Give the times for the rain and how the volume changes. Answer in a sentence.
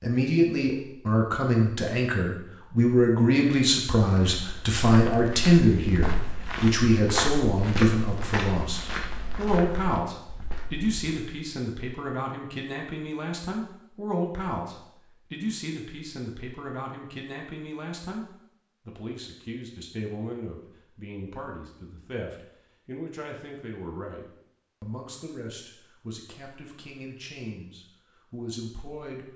You can't hear the rain here.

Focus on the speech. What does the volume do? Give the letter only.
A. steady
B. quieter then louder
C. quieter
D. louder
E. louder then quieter
C.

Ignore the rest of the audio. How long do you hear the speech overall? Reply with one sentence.
You can hear the speech for 29 seconds altogether.